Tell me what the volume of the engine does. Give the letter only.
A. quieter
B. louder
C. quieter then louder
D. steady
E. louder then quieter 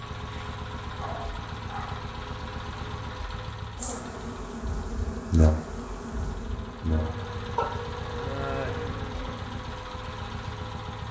C.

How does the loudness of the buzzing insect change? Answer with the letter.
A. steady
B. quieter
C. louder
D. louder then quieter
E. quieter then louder
D.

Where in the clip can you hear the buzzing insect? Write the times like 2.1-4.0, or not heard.
3.8-9.6.